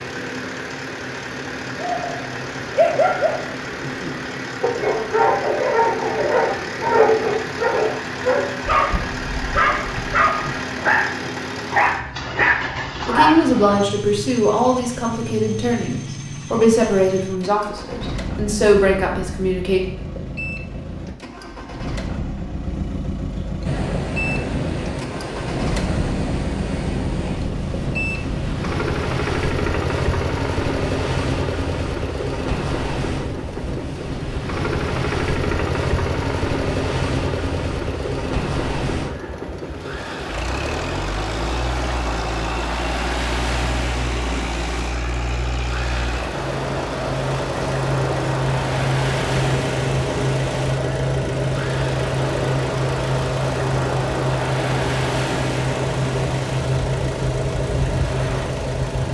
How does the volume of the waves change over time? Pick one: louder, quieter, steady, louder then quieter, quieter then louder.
steady.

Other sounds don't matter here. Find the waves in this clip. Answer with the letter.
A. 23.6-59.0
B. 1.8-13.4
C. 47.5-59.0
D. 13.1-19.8
A.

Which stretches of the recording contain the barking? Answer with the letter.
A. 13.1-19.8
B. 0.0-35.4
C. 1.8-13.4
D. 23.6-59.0
C.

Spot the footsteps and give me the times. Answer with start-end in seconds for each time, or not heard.
not heard.